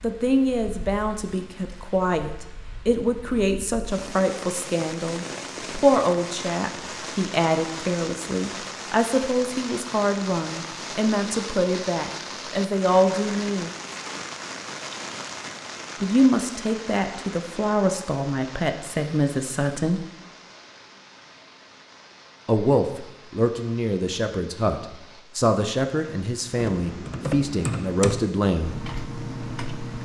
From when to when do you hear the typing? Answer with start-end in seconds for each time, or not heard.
26.6-30.0.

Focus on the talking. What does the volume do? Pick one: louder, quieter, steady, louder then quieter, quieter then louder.
steady.